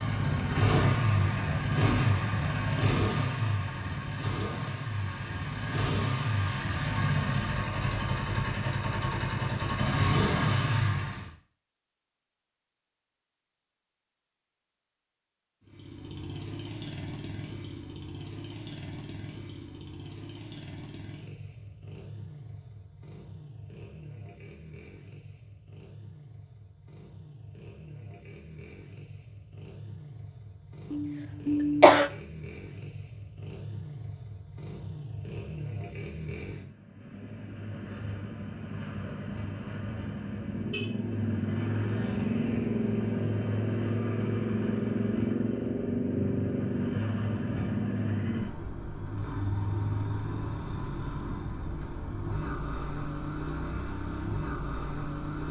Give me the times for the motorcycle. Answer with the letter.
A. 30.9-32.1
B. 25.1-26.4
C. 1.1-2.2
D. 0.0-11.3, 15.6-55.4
D.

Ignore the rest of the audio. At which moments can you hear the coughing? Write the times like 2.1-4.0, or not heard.
30.9-32.1.